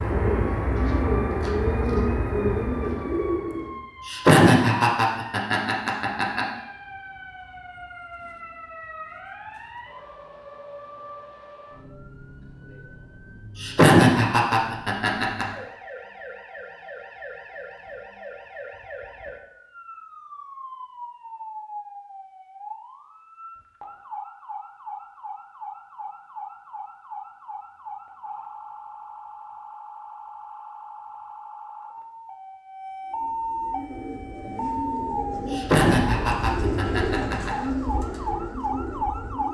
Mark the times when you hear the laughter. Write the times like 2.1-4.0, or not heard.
4.0-6.5, 13.6-15.4, 35.5-37.5.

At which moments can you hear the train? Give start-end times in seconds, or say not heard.
not heard.